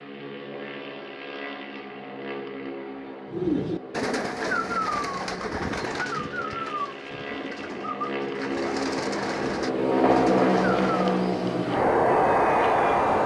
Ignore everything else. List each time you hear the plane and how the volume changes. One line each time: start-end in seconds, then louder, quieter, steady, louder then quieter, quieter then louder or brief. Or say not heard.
0.0-13.2 louder.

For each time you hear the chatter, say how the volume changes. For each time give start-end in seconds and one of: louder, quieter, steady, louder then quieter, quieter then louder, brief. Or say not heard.
not heard.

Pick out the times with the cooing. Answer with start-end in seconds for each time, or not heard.
3.3-11.2.